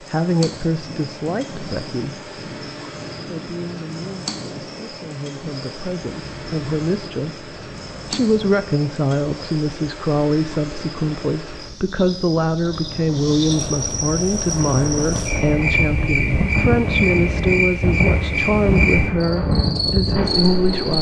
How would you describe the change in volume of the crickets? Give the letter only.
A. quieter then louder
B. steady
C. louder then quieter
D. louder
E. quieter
D.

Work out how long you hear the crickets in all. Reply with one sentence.
You can hear the crickets for 21 seconds altogether.